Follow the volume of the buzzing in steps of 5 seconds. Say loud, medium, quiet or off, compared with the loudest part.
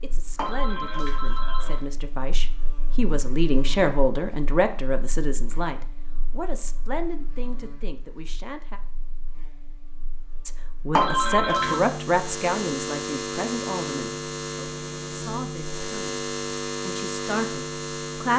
quiet, quiet, loud, loud.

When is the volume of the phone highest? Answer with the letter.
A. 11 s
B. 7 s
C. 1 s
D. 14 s
A.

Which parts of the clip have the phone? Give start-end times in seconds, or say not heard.
0.3-1.8, 10.9-11.8.